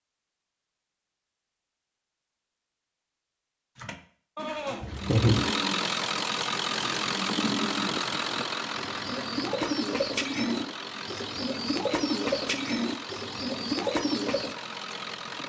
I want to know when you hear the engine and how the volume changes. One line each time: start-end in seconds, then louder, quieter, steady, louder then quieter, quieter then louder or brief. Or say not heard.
4.9-15.4 quieter.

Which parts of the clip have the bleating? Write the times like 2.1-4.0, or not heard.
4.3-5.4.